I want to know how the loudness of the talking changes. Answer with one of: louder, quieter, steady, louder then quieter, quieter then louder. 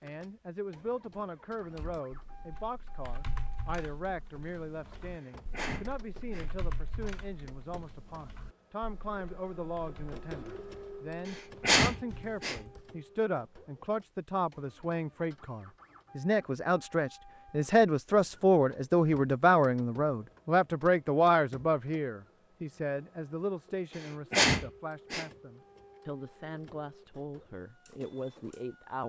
louder then quieter.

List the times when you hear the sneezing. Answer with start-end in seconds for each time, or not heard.
5.2-6.5, 11.2-12.6, 23.9-25.2.